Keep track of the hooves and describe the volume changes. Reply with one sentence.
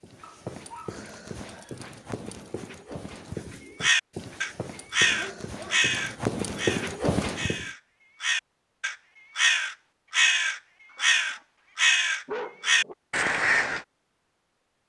The volume of the hooves goes up.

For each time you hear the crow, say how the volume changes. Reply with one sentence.
You can hear the crow from 3.8 to 13.8 s, getting quieter then louder.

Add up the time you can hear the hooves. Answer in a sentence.
You can hear the hooves for 8 seconds altogether.